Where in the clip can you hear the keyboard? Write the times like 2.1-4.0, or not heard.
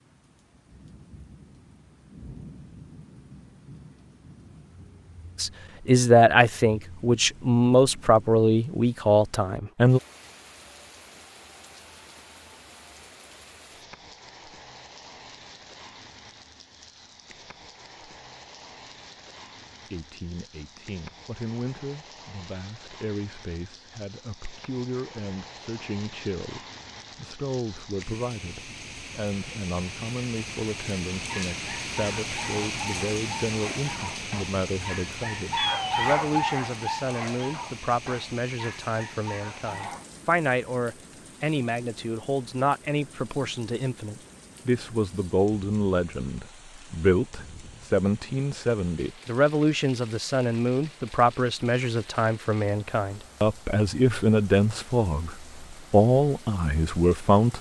not heard.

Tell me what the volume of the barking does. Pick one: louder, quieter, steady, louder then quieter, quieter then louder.
louder then quieter.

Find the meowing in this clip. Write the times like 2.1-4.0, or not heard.
35.5-36.0.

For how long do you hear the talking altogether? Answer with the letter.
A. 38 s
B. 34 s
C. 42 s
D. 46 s
C.